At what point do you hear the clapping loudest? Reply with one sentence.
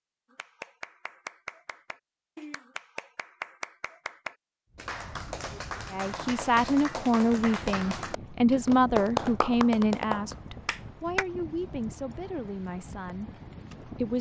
The volume of the clapping peaks at 9 seconds.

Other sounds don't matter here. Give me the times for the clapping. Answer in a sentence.
You can hear the clapping from 0.3 to 11.2 s.